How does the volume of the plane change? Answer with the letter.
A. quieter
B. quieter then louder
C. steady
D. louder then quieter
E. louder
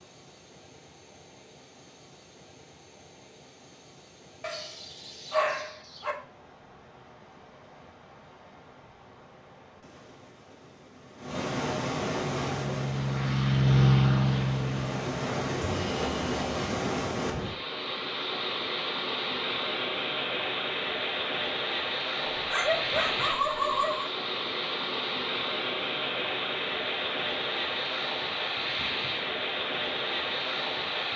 D.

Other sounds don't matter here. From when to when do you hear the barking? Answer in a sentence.
You can hear the barking from 4.4 to 6.2 s and from 22.2 to 24.1 s.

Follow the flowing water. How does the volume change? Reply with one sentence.
The loudness of the flowing water goes up.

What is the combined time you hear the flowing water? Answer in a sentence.
You can hear the flowing water for 31 seconds altogether.